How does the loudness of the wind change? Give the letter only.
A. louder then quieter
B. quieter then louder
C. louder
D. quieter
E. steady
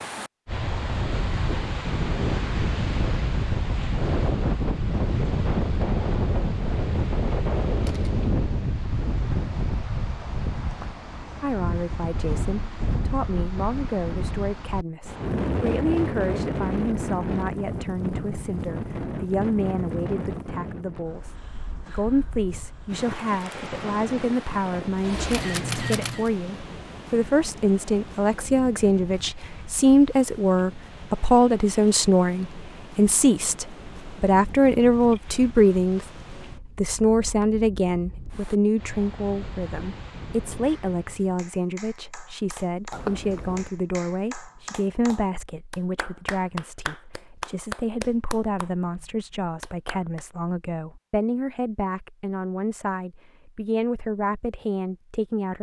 D.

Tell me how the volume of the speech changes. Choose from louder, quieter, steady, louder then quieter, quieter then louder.
louder then quieter.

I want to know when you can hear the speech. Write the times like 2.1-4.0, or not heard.
11.4-36.0, 36.6-55.5.